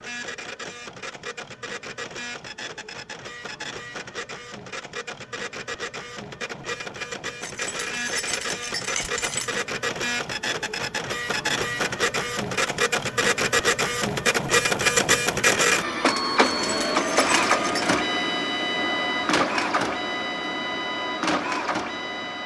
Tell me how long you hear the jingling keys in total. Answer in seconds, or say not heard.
4 s.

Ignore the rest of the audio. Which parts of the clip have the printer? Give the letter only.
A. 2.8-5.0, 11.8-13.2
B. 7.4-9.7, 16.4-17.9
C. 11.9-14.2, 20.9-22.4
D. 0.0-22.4
D.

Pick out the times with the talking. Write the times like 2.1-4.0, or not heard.
not heard.